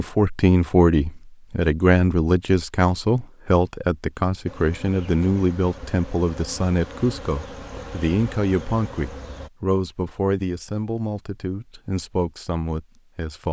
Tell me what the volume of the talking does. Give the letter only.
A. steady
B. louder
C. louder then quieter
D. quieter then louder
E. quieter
E.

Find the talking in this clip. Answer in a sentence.
The talking can be heard from 0.0 to 13.4 s.